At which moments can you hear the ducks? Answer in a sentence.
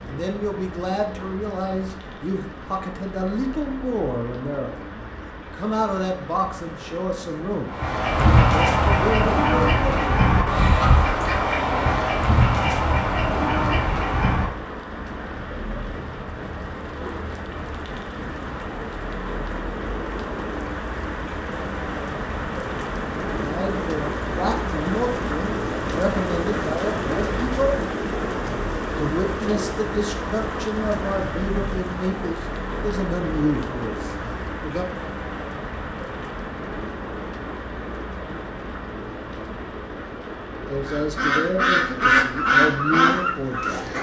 You can hear the ducks from 7.7 to 14.5 s and from 40.9 to 43.9 s.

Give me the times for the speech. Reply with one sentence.
You can hear the speech from 0.0 to 10.1 s, from 23.4 to 27.8 s, from 28.9 to 34.9 s and from 40.7 to 43.9 s.